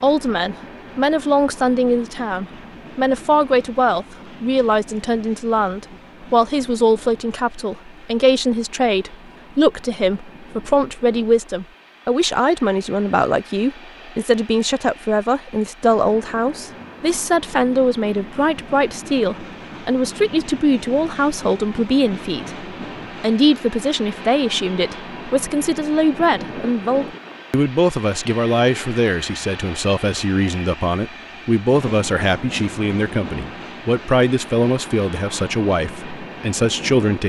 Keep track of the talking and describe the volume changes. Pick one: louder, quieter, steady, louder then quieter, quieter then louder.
steady.